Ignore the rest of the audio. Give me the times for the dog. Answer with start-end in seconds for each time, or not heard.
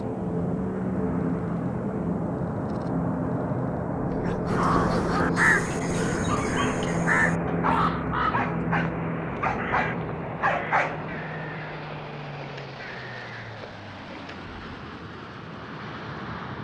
3.9-11.0.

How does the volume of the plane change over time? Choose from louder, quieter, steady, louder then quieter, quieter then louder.
quieter.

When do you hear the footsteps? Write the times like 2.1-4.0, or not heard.
not heard.